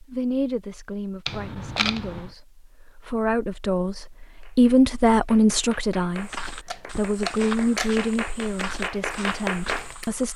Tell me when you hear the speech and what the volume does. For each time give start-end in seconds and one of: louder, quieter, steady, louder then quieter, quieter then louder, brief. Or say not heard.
0.0-10.3 louder then quieter.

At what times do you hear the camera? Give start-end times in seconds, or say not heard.
1.2-2.3, 6.7-8.0.